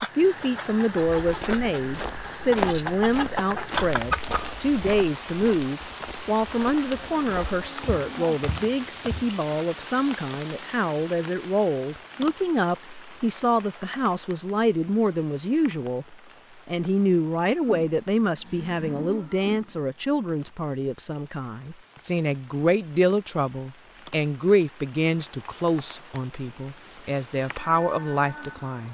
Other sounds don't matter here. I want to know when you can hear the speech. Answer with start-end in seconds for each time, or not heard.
0.0-28.8.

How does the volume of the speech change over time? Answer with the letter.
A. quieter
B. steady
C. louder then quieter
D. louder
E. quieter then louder
B.